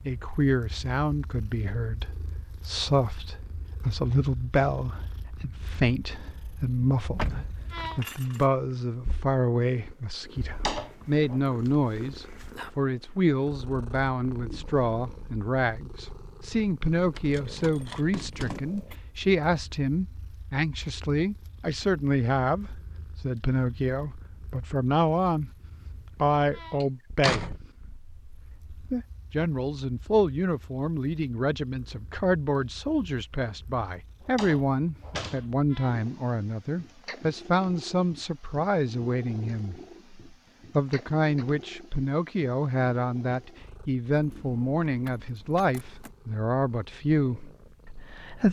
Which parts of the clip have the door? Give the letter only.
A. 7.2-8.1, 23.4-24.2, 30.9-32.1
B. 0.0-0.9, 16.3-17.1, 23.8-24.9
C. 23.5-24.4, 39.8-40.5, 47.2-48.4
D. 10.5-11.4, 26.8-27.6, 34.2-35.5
D.